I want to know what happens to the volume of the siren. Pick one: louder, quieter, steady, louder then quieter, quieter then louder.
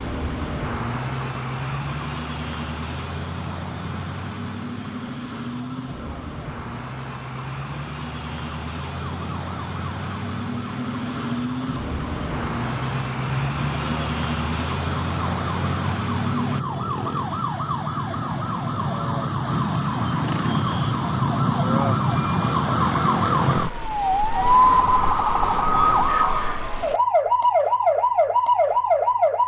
louder.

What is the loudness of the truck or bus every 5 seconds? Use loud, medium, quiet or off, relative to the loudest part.
loud, medium, loud, loud, off, off.